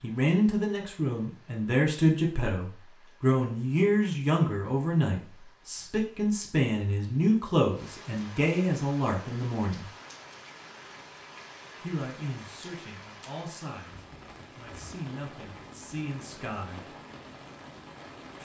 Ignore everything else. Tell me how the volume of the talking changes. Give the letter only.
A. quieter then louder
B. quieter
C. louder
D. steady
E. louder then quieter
B.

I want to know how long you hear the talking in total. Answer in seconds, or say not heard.
15 s.